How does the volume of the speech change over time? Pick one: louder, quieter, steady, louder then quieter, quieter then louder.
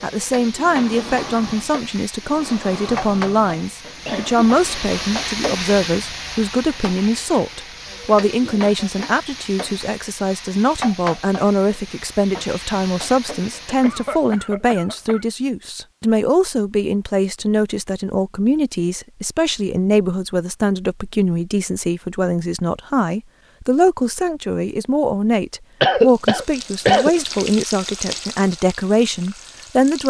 steady.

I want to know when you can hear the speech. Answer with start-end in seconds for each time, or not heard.
0.0-30.0.